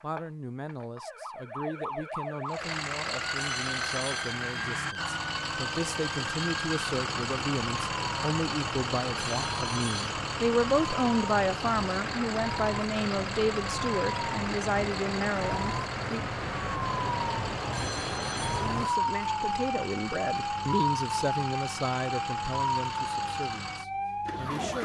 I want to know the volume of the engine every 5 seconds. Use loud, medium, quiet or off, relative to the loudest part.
loud, loud, loud, medium, medium.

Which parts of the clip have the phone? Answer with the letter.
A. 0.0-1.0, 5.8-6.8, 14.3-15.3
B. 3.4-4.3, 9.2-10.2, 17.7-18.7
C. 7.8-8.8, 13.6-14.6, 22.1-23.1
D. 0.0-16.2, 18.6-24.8
B.